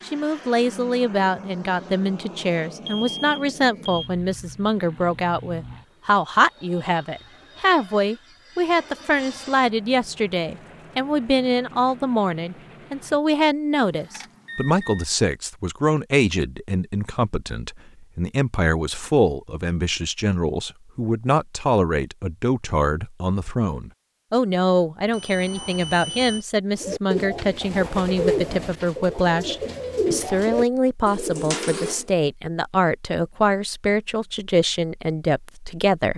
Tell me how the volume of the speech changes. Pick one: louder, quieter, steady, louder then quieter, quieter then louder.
steady.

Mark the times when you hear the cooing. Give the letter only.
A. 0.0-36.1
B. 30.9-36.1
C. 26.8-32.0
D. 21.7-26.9
C.